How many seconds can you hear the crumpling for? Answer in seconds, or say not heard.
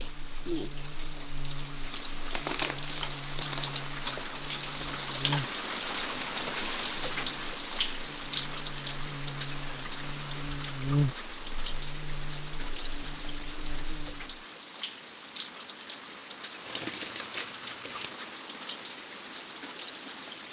3 s.